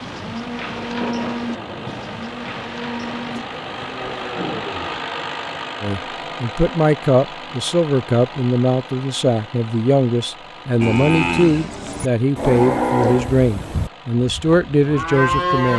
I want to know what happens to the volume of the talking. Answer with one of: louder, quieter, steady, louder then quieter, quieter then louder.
steady.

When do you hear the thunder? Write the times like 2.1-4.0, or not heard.
0.8-4.7.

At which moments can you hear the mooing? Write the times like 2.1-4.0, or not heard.
0.0-5.0, 10.8-15.7.